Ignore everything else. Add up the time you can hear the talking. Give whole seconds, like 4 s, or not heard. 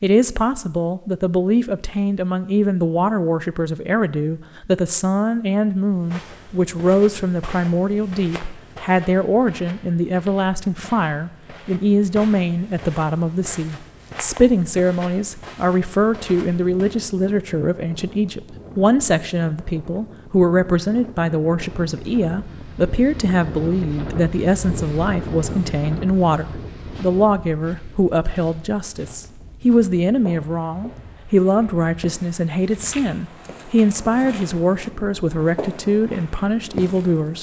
37 s.